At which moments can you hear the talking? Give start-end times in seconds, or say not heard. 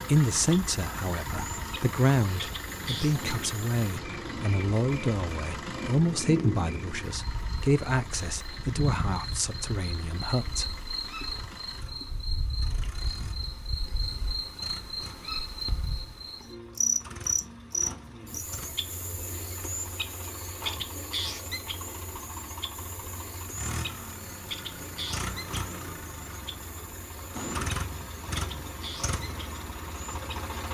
0.1-10.7.